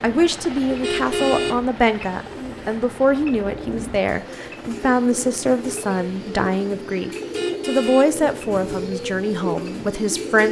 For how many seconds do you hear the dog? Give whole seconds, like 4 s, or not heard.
not heard.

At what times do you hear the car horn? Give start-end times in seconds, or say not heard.
0.7-1.6, 7.2-8.8.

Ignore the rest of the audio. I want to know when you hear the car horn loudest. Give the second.
1 s.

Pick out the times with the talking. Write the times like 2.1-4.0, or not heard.
0.0-10.4.